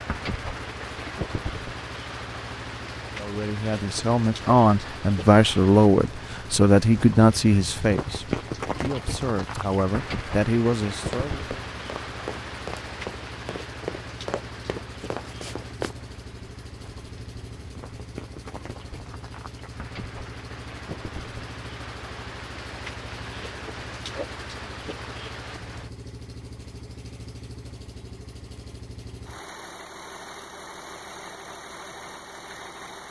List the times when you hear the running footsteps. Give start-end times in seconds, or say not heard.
10.9-15.9.